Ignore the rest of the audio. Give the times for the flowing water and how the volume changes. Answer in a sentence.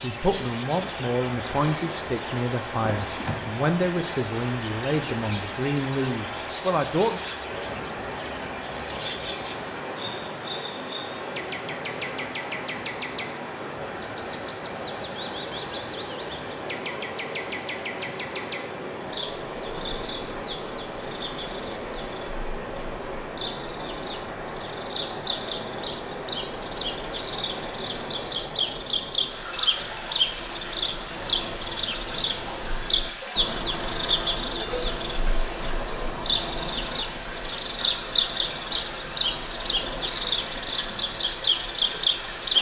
You can hear the flowing water from 0.0 to 42.5 s, at a steady volume.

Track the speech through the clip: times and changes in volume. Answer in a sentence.
The speech can be heard from 0.0 to 7.2 s, at a steady volume.